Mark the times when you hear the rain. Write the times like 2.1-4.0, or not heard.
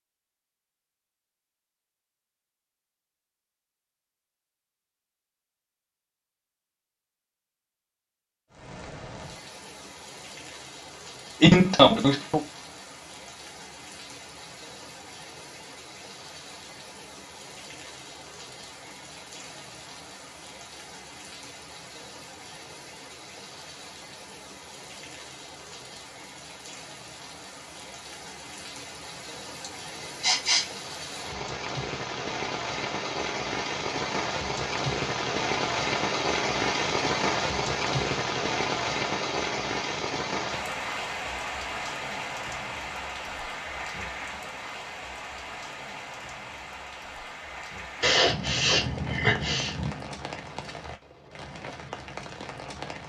8.5-53.0.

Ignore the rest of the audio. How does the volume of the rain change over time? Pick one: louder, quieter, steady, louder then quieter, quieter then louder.
louder then quieter.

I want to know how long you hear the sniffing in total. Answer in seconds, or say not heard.
4 s.